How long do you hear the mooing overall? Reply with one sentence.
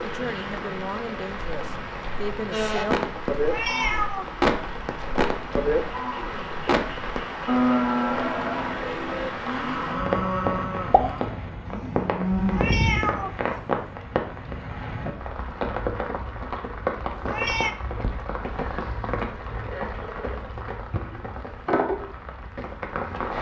You can hear the mooing for 11 seconds altogether.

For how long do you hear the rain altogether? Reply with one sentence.
The rain can be heard for 23 seconds in total.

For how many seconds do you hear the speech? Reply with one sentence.
The speech can be heard for 3 seconds in total.